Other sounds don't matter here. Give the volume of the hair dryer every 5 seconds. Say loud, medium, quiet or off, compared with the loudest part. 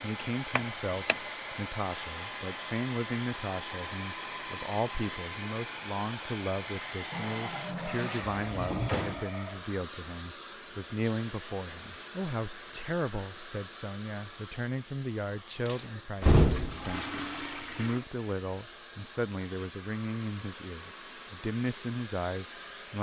loud, loud, medium, medium, medium.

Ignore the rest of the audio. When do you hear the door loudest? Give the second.
16 s.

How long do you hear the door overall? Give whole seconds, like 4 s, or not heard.
3 s.